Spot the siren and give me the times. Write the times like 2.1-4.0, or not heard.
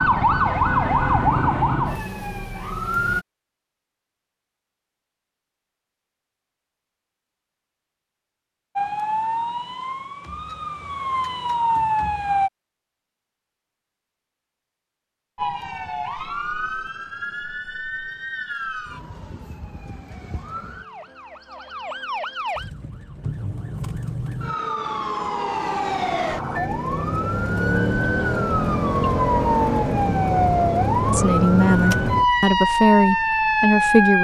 0.0-3.2, 8.8-12.5, 15.3-34.1.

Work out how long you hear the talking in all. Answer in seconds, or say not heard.
3 s.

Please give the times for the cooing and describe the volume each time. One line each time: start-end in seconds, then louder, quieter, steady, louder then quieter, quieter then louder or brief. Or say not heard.
not heard.